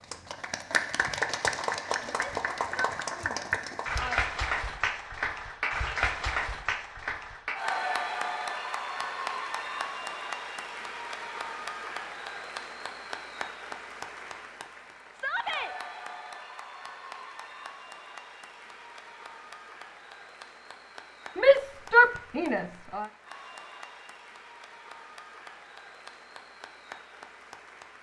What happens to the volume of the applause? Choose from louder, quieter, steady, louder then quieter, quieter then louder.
quieter.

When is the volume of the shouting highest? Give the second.
22 s.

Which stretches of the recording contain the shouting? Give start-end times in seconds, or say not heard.
2.0-4.2, 15.1-15.8, 21.4-23.1.